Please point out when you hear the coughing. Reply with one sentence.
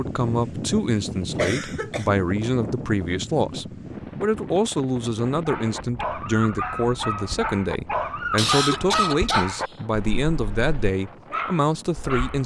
The coughing can be heard from 1.4 to 2.0 s and from 8.3 to 9.8 s.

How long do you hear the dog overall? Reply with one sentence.
The dog can be heard for 7 seconds in total.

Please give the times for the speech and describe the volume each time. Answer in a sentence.
You can hear the speech from 0.0 to 12.4 s, at a steady volume.